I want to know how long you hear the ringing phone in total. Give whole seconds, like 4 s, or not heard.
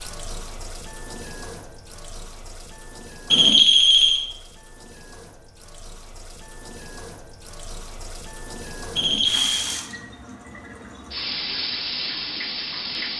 2 s.